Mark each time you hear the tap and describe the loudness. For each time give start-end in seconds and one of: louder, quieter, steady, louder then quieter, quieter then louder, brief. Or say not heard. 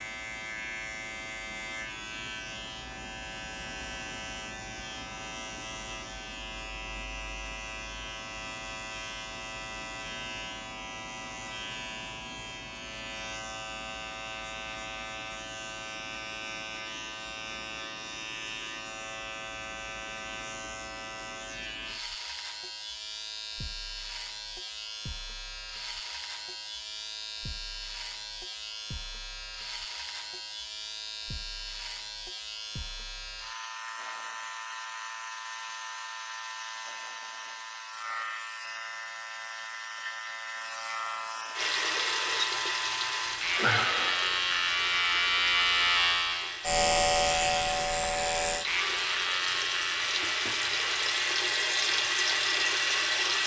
41.5-53.4 quieter then louder.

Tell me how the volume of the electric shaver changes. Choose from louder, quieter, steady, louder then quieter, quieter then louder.
louder.